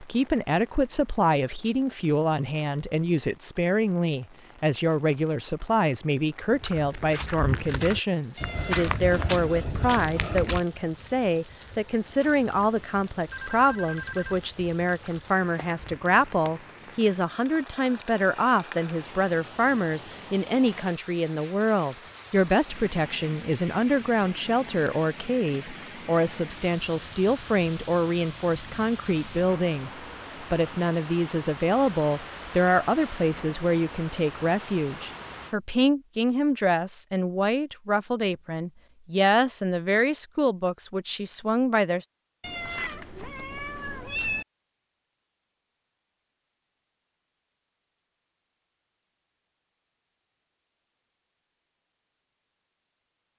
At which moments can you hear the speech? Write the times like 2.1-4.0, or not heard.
0.0-42.0.